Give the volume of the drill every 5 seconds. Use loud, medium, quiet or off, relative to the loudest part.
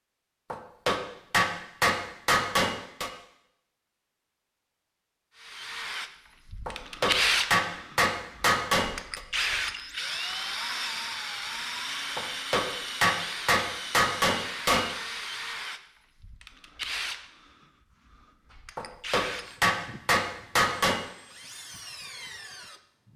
off, loud, loud, medium, quiet.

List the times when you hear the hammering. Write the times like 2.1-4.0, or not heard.
0.5-3.1, 6.7-9.2, 12.2-14.8, 18.8-21.0.